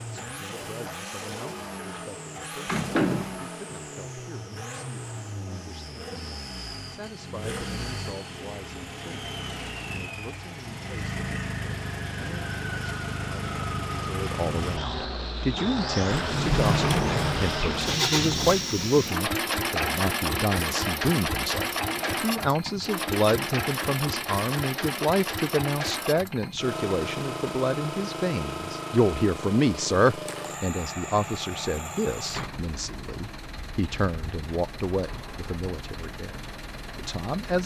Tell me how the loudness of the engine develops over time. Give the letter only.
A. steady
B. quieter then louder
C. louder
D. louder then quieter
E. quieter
D.